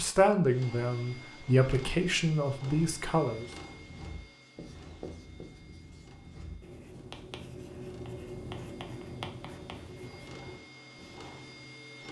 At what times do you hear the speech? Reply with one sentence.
You can hear the speech from 0.0 to 3.5 s.